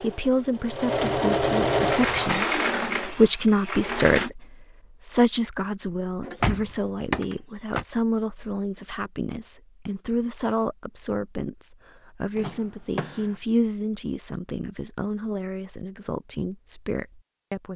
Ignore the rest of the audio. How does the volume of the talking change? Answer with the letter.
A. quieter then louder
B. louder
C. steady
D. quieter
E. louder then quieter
D.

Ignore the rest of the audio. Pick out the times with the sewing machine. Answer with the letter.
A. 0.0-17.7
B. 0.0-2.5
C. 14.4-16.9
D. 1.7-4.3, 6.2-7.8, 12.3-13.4
B.